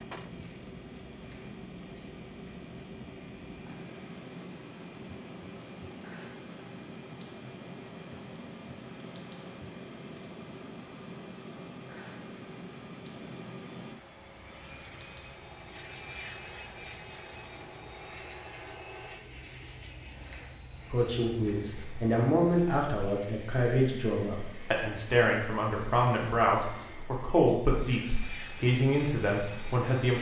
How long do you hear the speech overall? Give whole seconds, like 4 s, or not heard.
9 s.